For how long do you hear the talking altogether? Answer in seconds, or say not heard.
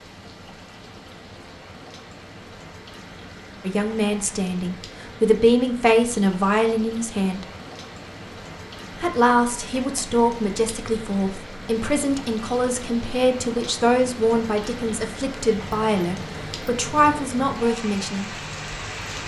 13 s.